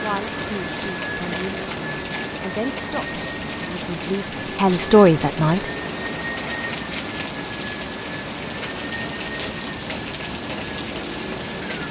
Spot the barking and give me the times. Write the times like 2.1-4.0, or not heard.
not heard.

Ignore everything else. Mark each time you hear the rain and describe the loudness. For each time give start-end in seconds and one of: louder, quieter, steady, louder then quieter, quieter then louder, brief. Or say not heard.
0.0-11.8 steady.